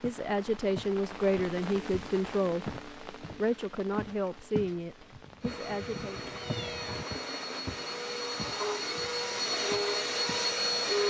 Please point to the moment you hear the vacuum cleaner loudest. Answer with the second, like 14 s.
11 s.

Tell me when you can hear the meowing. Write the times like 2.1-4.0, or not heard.
5.1-7.0.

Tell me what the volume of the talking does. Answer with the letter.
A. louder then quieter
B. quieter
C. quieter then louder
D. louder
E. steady
B.